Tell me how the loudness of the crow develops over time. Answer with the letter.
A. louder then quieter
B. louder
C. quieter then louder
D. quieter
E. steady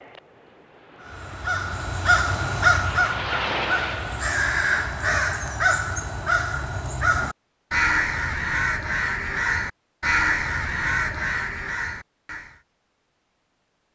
E.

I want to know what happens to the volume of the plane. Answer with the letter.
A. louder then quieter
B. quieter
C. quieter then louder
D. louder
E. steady
D.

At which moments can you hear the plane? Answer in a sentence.
The plane can be heard from 0.0 to 4.3 s.